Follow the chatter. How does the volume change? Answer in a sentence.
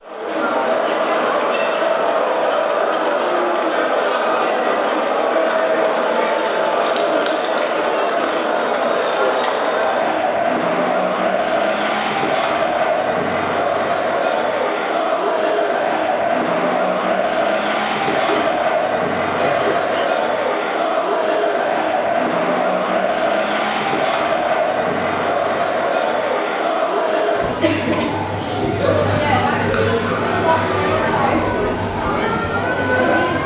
The loudness of the chatter stays about the same.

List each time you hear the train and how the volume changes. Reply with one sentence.
The train can't be heard in this clip.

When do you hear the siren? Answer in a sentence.
You can hear the siren from 27.3 to 33.4 s.